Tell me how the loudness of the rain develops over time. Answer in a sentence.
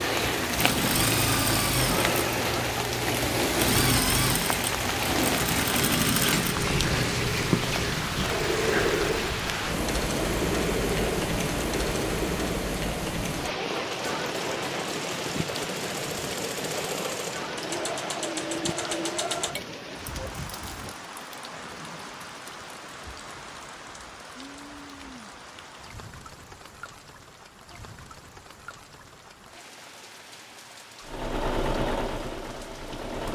The loudness of the rain goes down.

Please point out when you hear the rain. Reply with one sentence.
The rain can be heard from 0.0 to 33.3 s.